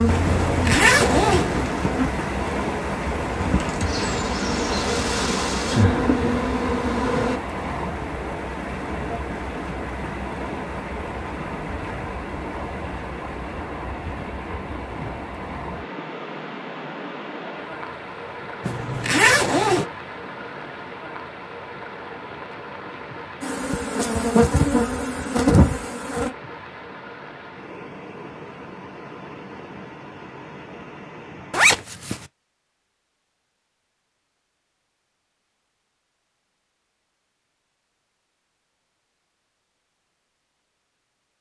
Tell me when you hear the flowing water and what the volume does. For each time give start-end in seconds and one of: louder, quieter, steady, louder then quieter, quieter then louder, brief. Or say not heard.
0.0-31.9 quieter.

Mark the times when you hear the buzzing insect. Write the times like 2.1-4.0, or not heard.
0.0-7.4, 23.4-26.3.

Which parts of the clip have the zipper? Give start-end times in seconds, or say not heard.
0.2-1.7, 18.6-19.9, 31.5-32.2.